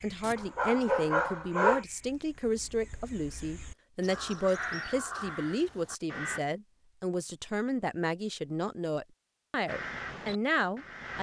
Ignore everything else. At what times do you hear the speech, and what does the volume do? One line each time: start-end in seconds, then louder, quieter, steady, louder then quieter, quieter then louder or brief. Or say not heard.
0.0-11.1 steady.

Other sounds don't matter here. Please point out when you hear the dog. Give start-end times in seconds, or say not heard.
0.2-1.9.